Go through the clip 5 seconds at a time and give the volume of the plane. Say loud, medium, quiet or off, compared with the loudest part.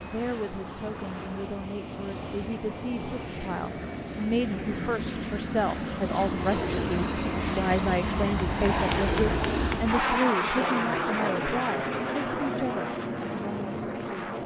medium, loud, loud.